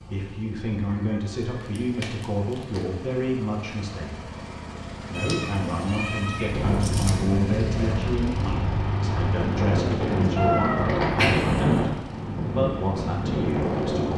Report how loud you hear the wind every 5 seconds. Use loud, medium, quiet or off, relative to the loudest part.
off, loud, loud.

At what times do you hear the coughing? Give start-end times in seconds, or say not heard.
not heard.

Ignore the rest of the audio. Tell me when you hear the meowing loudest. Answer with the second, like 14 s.
11 s.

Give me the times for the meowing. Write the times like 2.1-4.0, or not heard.
0.9-2.9, 5.1-7.1, 10.3-12.0.